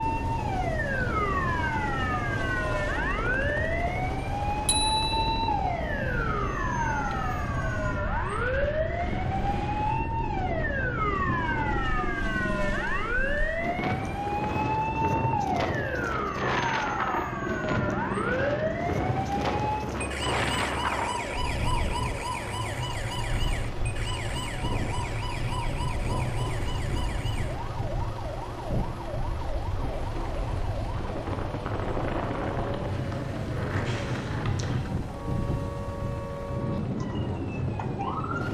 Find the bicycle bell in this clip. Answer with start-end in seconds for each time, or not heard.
4.7-5.2, 33.9-34.9.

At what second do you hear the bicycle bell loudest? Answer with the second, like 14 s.
5 s.